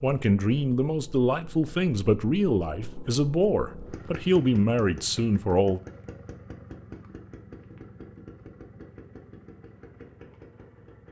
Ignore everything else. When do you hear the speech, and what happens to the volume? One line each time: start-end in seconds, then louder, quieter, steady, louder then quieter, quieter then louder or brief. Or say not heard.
0.0-5.8 steady.